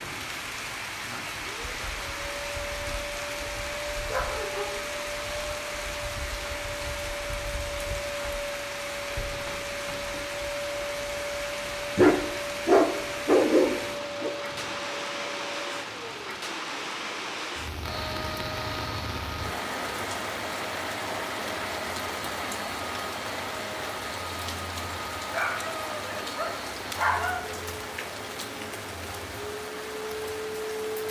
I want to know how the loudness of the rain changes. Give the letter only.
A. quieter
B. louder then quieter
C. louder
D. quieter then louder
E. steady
E.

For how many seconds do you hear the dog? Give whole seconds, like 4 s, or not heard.
5 s.